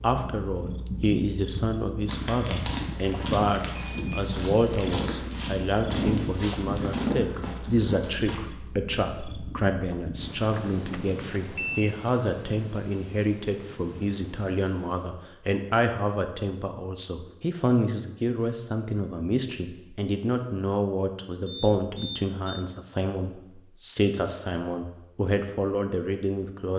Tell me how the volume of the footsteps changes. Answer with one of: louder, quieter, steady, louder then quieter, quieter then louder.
louder.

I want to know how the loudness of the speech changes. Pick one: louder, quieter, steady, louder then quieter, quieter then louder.
steady.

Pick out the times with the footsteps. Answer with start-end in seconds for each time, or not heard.
2.0-8.4.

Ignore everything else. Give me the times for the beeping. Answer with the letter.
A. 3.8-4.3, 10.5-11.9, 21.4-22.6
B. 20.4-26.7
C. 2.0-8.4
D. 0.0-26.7
A.